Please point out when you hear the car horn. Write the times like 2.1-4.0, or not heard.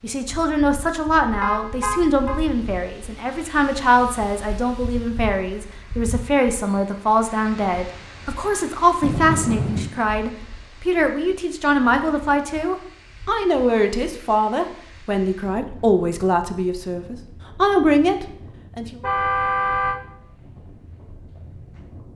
1.4-2.4, 9.0-9.9, 19.0-20.0.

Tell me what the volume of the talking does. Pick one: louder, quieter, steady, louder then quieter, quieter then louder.
steady.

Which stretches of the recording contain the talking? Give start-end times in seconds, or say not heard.
0.0-18.9.